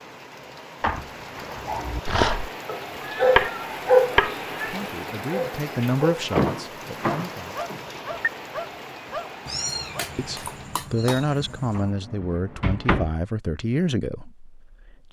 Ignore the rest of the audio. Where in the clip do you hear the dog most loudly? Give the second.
4 s.